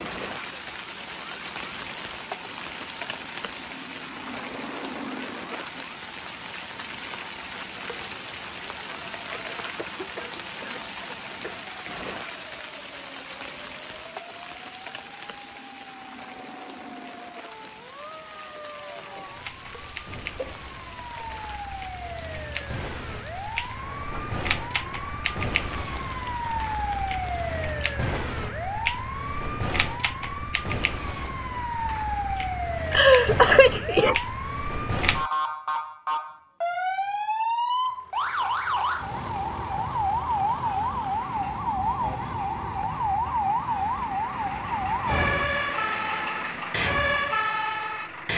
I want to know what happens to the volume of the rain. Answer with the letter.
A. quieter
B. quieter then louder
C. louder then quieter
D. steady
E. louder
A.